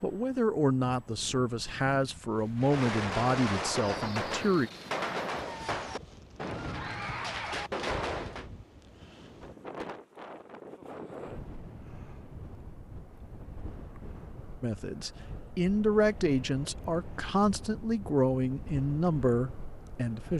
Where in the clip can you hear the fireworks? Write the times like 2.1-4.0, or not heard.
2.5-8.5.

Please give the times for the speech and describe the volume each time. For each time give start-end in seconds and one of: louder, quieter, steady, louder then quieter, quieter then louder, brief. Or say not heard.
0.0-4.7 quieter
14.6-20.3 steady.